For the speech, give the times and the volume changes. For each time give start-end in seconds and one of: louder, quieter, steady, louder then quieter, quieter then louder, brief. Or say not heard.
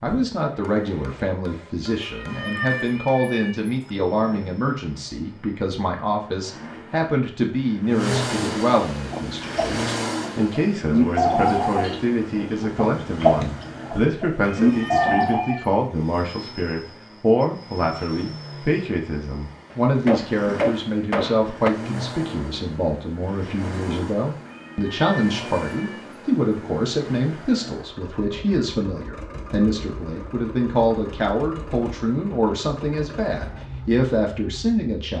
0.0-35.1 steady.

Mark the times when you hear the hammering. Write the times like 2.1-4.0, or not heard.
0.6-3.2, 19.7-21.7.